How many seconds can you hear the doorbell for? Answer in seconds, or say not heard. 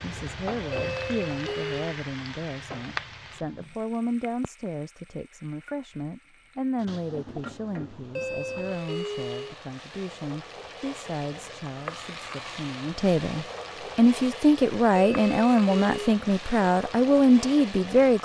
4 s.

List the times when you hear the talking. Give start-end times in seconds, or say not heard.
0.0-18.1.